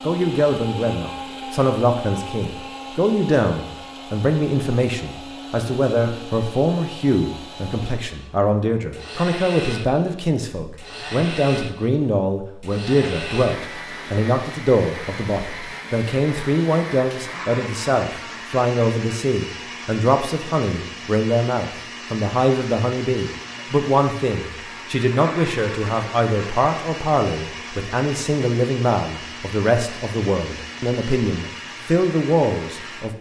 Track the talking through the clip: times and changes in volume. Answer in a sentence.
The talking can be heard from 0.0 to 33.1 s, at a steady volume.